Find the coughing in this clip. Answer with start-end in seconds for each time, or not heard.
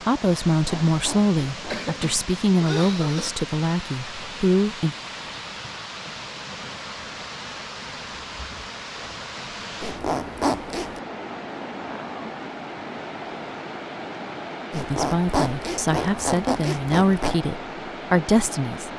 1.6-3.3.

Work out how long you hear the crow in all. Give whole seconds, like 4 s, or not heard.
not heard.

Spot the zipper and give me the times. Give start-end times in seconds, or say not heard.
0.6-1.9, 9.8-11.0, 14.7-17.4.